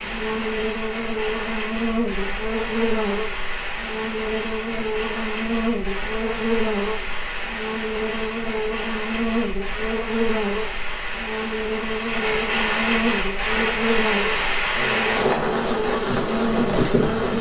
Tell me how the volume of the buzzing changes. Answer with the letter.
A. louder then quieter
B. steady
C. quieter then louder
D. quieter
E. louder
B.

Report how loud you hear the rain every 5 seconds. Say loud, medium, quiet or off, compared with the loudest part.
medium, medium, loud, loud.